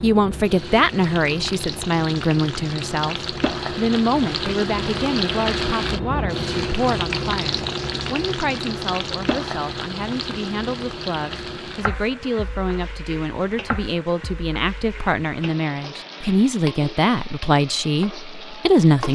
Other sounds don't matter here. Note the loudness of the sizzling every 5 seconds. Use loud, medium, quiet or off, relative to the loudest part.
loud, loud, medium, medium.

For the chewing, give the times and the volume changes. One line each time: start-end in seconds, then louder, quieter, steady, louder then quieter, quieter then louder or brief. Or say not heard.
not heard.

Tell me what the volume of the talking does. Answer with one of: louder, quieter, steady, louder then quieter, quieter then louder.
quieter then louder.